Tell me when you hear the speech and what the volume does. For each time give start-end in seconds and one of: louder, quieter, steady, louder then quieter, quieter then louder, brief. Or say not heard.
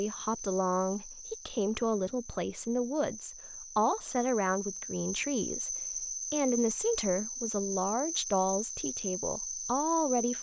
0.0-10.3 steady.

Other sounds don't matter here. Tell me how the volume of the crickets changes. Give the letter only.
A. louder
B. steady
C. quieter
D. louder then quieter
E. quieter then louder
A.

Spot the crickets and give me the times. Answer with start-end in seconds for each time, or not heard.
0.0-10.3.